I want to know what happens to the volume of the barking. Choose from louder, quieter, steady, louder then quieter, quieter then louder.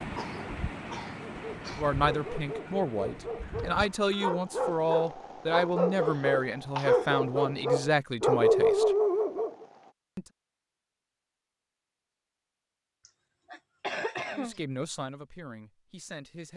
louder.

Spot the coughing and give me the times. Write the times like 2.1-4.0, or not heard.
0.1-1.9, 6.0-7.2, 13.1-14.6.